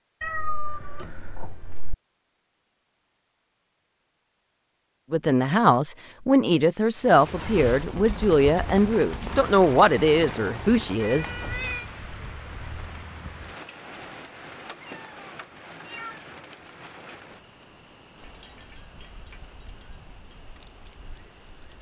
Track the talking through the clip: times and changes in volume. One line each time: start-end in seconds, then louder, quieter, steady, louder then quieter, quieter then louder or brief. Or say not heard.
5.1-11.2 steady.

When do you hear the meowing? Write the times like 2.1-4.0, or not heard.
0.2-1.9, 11.0-11.8, 14.8-16.2.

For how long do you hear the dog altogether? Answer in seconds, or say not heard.
not heard.